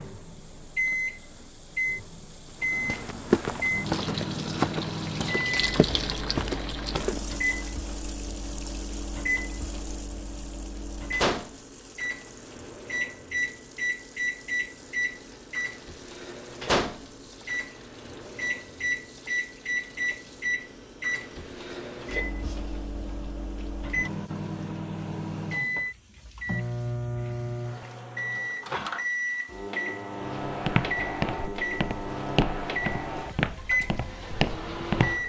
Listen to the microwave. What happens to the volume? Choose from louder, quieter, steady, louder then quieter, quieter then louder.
steady.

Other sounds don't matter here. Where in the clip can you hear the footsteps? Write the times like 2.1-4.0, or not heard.
2.6-7.3, 30.4-35.2.